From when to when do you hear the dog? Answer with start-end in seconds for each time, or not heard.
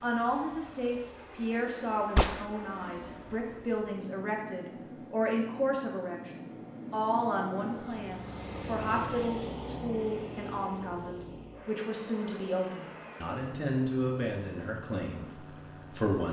not heard.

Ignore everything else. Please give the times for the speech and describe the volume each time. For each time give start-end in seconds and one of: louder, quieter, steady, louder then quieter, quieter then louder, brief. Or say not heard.
0.0-16.2 steady.